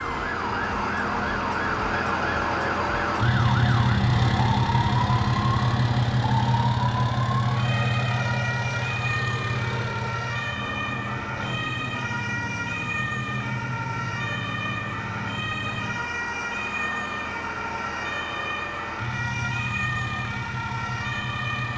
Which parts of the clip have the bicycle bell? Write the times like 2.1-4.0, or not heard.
not heard.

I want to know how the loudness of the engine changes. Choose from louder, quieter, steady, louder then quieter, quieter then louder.
quieter.